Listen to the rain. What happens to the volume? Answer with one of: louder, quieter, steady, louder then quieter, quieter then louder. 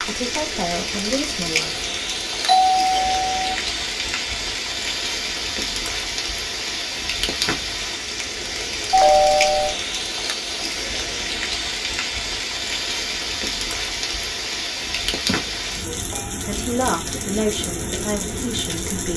steady.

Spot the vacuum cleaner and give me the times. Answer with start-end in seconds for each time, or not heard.
not heard.